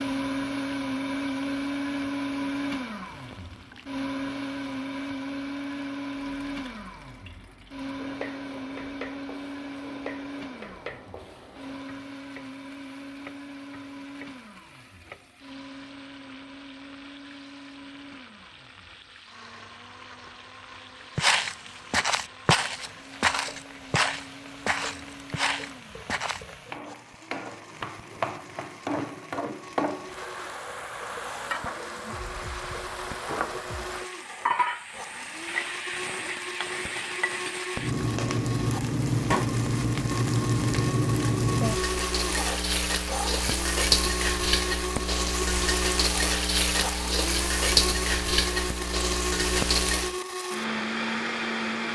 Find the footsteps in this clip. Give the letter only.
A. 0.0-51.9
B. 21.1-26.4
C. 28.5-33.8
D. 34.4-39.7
B.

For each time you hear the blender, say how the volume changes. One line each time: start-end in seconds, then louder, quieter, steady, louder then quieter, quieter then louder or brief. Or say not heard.
0.0-51.9 quieter then louder.